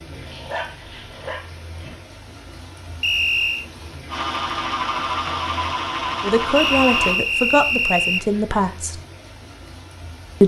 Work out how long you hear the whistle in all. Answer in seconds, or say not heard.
2 s.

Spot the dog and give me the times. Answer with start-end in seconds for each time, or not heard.
0.1-1.9.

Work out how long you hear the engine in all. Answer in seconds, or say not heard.
3 s.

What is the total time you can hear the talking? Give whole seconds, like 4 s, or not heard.
3 s.